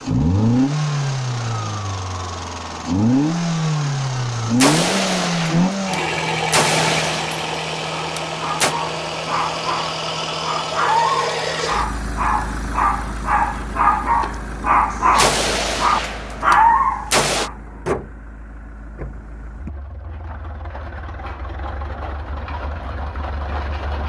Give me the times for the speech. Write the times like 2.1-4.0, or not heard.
not heard.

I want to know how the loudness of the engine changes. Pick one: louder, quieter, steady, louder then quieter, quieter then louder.
quieter.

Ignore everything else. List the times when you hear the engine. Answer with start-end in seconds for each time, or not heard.
0.0-24.0.